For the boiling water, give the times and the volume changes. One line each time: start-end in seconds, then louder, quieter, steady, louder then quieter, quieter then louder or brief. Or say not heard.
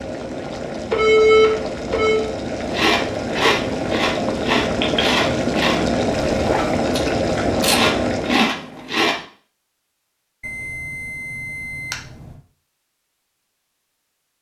0.0-8.7 louder.